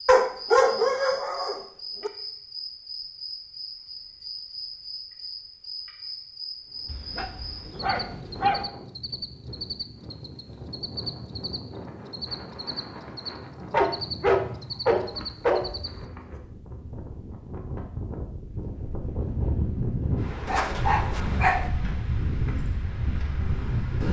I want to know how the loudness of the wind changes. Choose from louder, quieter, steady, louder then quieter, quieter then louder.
louder.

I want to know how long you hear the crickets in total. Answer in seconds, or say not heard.
16 s.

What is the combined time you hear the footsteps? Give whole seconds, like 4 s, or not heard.
not heard.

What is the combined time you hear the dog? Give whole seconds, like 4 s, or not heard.
7 s.